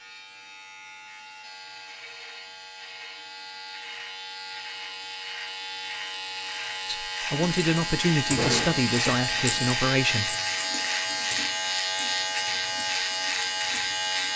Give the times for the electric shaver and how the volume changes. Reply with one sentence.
The electric shaver can be heard from 0.0 to 14.3 s, getting louder.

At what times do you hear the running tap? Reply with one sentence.
The running tap can be heard from 7.6 to 14.3 s.